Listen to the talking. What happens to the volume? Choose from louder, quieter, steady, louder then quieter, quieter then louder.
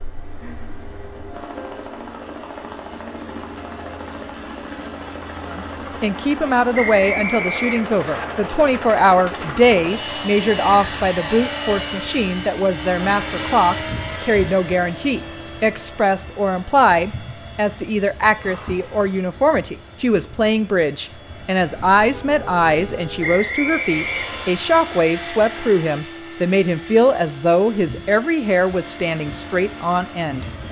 steady.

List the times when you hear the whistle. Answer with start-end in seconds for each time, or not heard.
6.7-8.2, 23.2-24.6.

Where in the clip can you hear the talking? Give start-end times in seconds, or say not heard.
5.5-30.4.